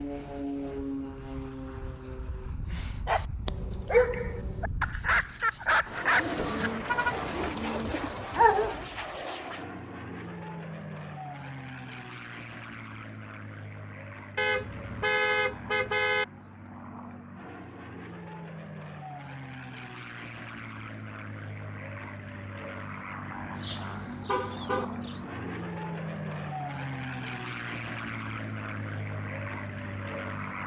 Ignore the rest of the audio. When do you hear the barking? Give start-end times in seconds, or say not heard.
2.7-8.9.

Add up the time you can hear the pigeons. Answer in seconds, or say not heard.
4 s.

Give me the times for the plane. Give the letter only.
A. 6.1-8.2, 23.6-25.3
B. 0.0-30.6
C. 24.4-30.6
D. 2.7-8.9
B.